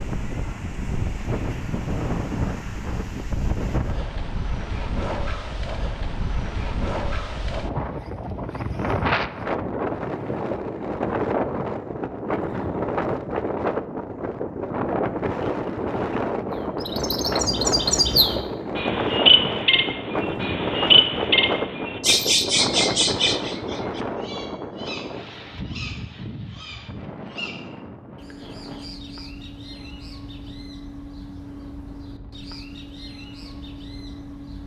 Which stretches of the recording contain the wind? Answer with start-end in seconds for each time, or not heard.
0.0-34.6.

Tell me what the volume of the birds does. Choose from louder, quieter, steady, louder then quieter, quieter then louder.
quieter.